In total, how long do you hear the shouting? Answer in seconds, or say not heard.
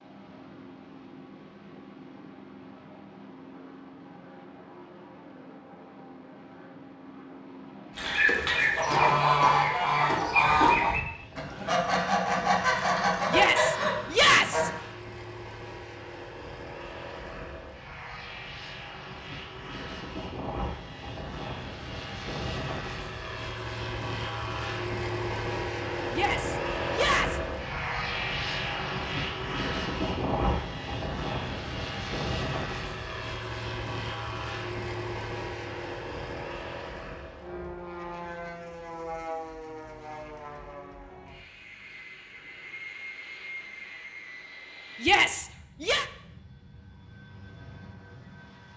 4 s.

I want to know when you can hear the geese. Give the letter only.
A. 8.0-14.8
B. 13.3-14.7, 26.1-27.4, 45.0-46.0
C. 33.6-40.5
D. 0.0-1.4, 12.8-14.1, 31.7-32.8
A.